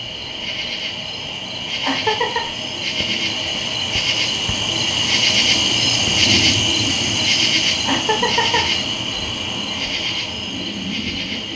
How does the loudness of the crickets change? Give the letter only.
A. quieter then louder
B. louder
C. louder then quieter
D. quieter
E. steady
C.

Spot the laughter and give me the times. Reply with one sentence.
The laughter can be heard from 1.8 to 2.4 s and from 7.8 to 8.7 s.